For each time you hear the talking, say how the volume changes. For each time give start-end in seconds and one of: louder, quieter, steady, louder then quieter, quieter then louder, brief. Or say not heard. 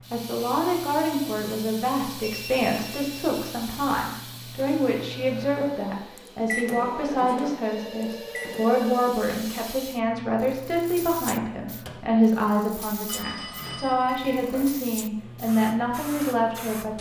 0.1-16.9 steady.